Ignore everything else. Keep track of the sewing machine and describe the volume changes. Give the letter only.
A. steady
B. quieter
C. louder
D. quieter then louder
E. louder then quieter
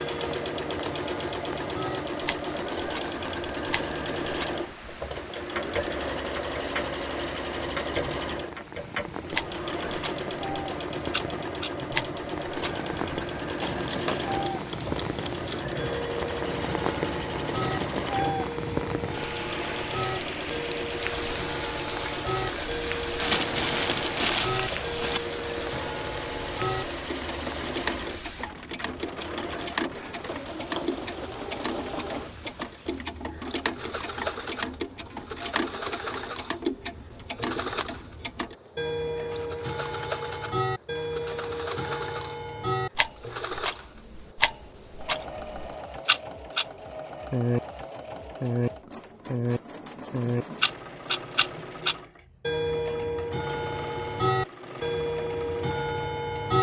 B.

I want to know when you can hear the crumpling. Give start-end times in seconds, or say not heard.
23.1-25.2.